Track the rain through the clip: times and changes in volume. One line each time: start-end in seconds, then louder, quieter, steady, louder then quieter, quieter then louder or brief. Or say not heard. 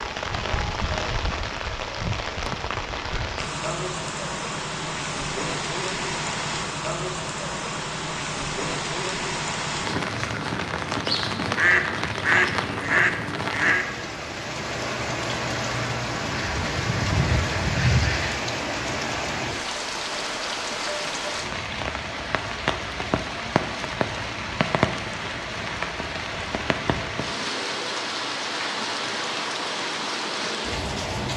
0.0-31.3 steady.